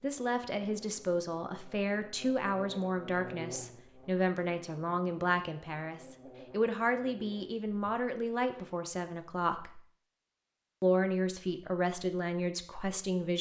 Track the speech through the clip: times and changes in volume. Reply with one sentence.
You can hear the speech from 0.0 to 9.8 s, at a steady volume; and briefly from 10.8 to 13.3 s.